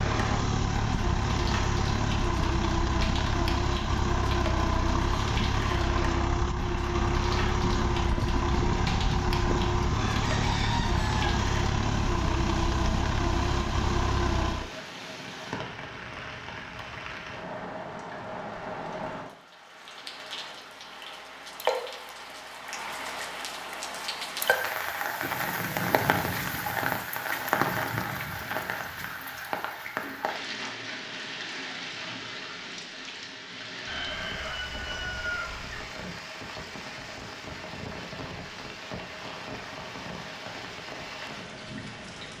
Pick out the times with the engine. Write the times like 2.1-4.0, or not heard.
0.0-14.7.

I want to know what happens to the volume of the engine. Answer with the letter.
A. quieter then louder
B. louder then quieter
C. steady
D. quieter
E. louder
C.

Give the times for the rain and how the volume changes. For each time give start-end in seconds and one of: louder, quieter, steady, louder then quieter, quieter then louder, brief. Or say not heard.
0.0-42.3 louder then quieter.